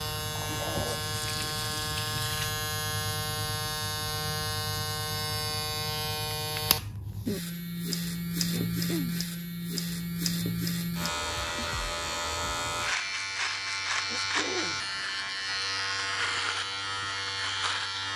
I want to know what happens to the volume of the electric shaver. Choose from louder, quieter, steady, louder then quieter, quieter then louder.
steady.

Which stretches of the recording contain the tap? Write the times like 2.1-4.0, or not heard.
0.0-2.5.